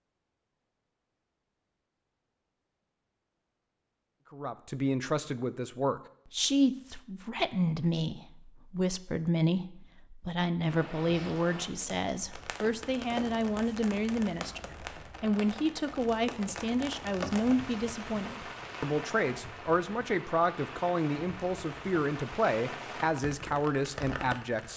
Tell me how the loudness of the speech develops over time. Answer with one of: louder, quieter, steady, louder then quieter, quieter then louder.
steady.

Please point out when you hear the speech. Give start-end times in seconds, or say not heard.
4.3-24.7.